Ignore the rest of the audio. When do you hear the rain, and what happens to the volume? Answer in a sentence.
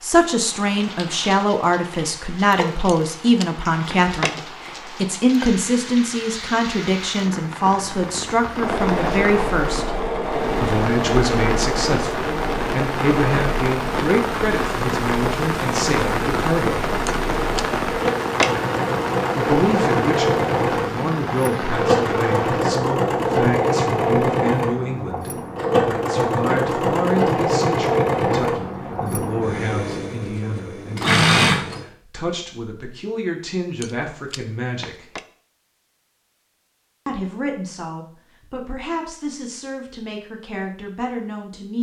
The rain can be heard from 0.0 to 22.6 s, getting louder.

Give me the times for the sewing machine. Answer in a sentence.
You can hear the sewing machine from 8.6 to 31.9 s.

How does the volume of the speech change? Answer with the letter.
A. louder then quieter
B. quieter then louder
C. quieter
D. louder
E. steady
C.